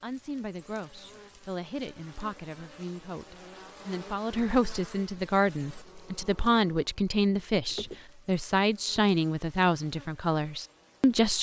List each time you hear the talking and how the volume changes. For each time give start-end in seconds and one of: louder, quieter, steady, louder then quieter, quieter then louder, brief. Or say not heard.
0.0-11.3 louder.